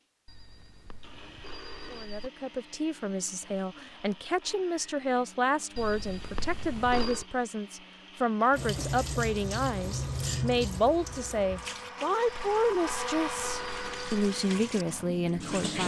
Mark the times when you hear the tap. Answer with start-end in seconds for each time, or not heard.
8.5-15.8.